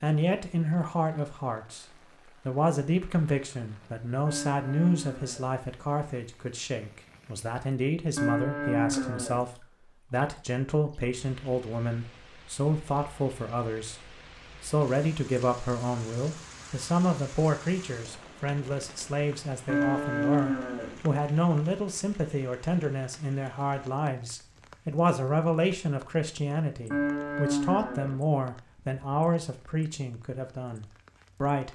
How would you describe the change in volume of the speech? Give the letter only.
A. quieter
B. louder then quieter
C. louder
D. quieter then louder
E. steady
E.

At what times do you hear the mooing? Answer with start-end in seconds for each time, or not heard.
4.2-5.5, 8.2-9.4, 19.6-21.0, 26.9-28.2.